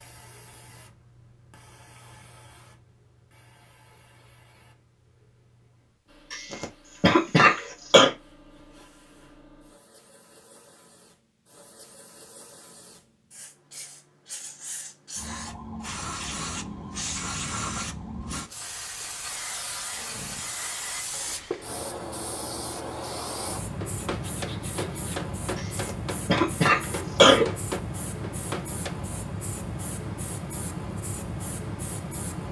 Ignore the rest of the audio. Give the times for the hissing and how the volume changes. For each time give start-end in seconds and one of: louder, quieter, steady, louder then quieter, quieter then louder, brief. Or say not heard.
0.0-32.4 louder.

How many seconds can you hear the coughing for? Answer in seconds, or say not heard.
4 s.